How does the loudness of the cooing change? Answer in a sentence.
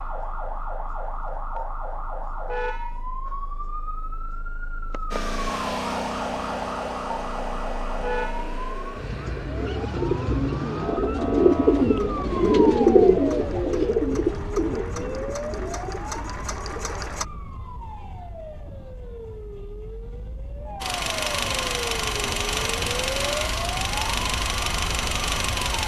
The loudness of the cooing goes up, then down.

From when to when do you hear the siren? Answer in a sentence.
The siren can be heard from 0.0 to 25.8 s.